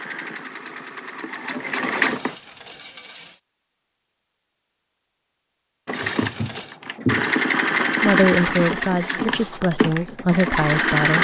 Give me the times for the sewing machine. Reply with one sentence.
You can hear the sewing machine from 0.0 to 2.4 s and from 5.8 to 11.1 s.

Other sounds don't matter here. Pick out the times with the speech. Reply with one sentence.
You can hear the speech from 8.0 to 11.1 s.